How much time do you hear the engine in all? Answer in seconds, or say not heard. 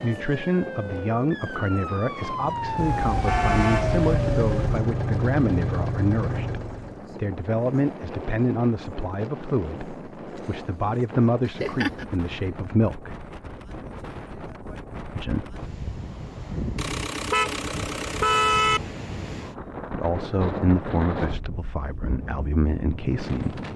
5 s.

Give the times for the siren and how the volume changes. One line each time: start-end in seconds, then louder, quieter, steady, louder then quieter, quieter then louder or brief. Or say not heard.
0.0-4.7 louder.